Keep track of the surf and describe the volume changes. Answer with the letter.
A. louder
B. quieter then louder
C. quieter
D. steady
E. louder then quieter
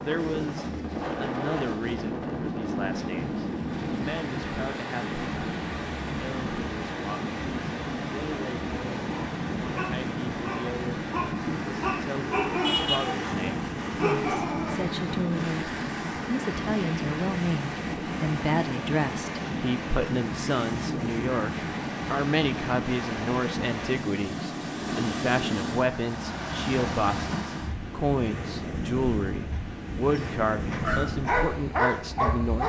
D.